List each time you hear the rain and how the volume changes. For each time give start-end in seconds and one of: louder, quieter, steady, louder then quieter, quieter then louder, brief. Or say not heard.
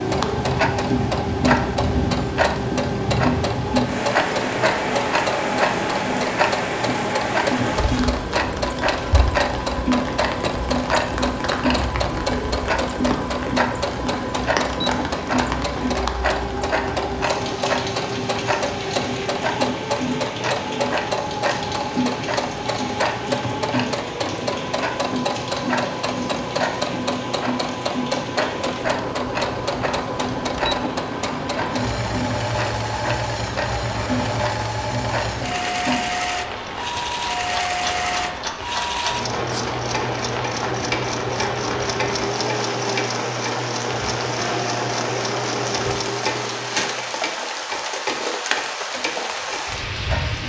0.0-50.4 quieter then louder.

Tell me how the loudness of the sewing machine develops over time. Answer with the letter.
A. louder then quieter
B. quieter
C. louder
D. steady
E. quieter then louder
D.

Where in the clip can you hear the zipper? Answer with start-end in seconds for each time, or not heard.
not heard.